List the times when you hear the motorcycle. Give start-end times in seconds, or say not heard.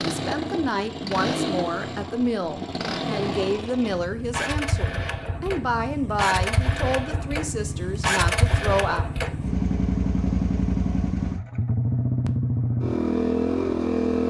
0.0-14.2.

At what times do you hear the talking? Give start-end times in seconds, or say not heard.
0.0-9.1.